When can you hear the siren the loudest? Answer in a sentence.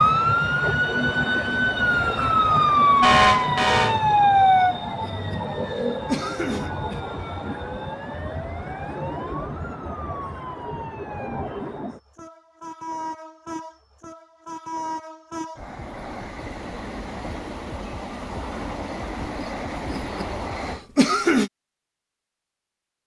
The volume of the siren peaks at 3 seconds.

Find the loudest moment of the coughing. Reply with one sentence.
The volume of the coughing peaks at 21 seconds.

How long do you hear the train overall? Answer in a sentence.
You can hear the train for 21 seconds altogether.